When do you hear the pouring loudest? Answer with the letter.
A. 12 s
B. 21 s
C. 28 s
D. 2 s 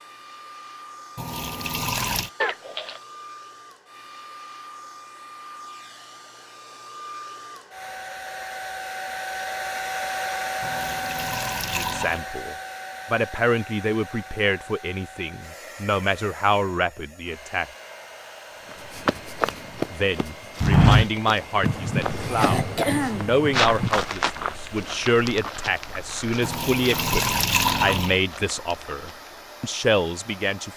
C.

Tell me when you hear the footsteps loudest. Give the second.
21 s.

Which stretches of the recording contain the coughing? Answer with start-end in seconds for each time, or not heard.
2.4-3.0, 21.6-23.9.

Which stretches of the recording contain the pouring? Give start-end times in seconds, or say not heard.
1.1-2.3, 10.6-12.2, 26.4-28.2.